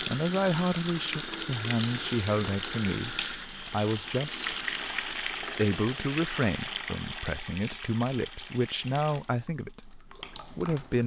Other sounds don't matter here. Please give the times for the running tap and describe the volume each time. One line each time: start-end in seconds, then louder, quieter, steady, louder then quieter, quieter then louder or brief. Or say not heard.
0.0-11.0 quieter.